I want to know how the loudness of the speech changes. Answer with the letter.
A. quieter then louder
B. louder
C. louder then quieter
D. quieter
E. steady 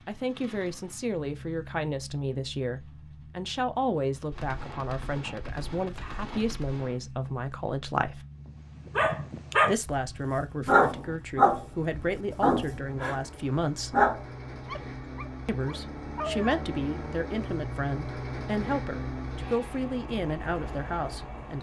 E.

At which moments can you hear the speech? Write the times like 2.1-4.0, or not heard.
0.1-8.2, 9.7-14.0, 15.4-21.5.